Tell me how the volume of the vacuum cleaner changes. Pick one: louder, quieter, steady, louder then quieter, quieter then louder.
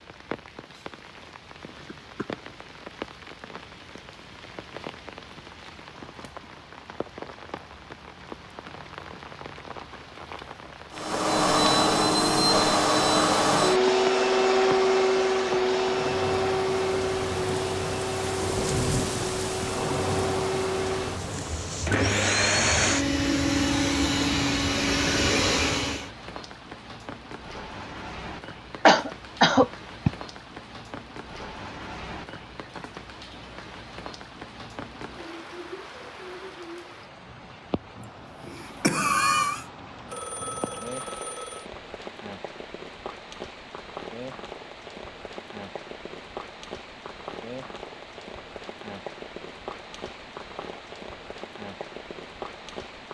quieter then louder.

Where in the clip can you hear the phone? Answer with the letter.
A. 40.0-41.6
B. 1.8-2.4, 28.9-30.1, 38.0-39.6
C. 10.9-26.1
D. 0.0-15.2
A.